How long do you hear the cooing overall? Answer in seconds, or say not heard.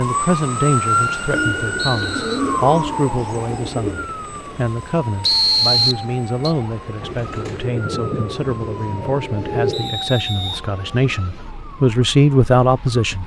6 s.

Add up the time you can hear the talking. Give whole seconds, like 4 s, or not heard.
13 s.